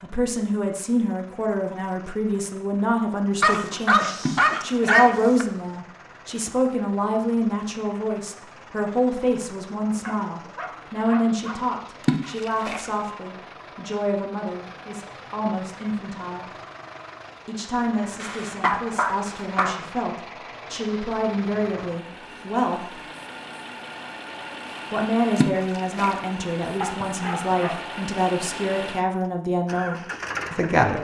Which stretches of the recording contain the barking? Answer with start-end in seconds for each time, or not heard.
3.4-5.5, 10.1-11.6, 18.2-19.8, 26.8-27.9.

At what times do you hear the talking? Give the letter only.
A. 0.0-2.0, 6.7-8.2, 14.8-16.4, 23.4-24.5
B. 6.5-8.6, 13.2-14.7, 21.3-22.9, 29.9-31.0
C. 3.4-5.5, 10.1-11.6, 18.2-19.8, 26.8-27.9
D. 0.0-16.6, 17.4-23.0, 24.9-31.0
D.